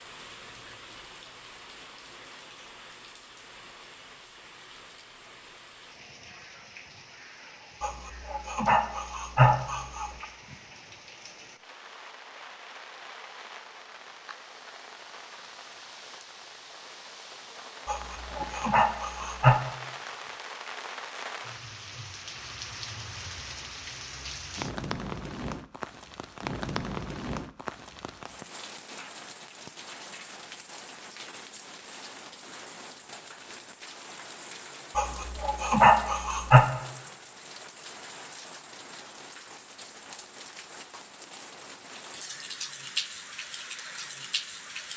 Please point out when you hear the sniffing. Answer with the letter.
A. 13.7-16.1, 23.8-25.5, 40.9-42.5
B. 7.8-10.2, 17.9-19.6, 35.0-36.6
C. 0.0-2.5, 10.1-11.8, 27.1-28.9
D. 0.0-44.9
B.